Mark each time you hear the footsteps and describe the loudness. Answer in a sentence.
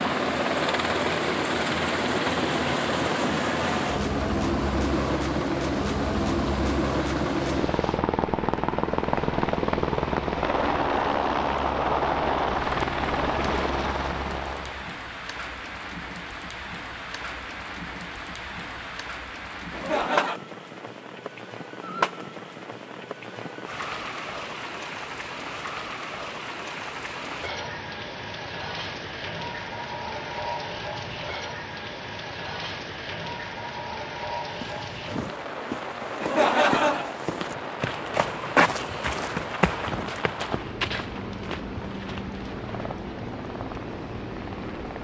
The footsteps can be heard from 34.5 to 42.8 s, getting louder then quieter.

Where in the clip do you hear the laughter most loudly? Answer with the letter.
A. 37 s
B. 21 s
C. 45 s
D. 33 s
A.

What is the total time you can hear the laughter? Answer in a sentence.
You can hear the laughter for 2 seconds altogether.